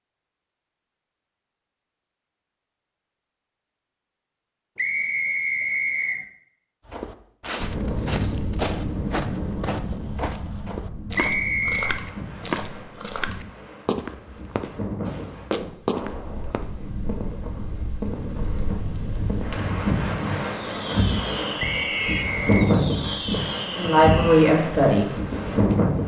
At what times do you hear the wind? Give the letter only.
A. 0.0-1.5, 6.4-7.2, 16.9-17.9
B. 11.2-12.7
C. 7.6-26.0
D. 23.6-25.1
C.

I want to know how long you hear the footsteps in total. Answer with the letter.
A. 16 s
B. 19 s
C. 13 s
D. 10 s
D.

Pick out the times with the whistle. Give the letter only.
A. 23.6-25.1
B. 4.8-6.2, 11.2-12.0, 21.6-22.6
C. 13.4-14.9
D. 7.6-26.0
B.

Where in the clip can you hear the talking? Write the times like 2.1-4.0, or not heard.
23.6-25.1.